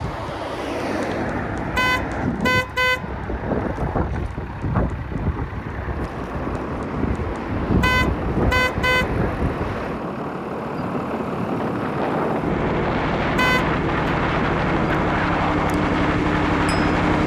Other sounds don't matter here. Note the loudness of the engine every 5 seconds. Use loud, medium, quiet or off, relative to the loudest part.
quiet, medium, loud, loud.